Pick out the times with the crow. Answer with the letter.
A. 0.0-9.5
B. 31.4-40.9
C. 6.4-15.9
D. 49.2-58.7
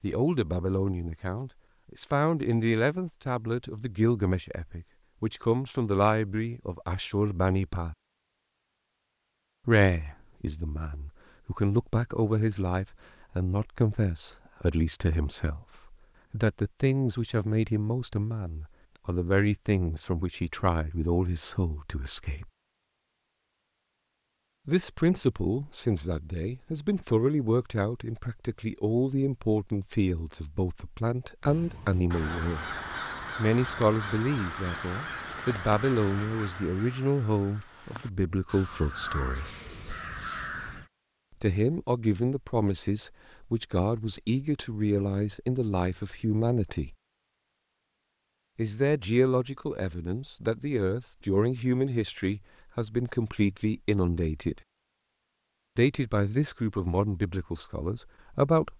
B.